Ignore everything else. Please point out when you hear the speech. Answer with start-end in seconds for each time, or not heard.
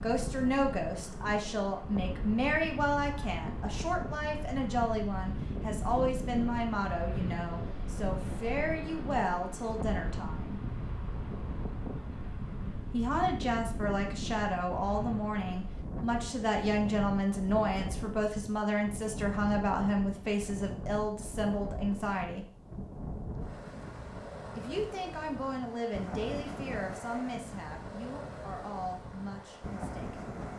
0.0-10.6, 12.9-22.4, 24.6-30.2.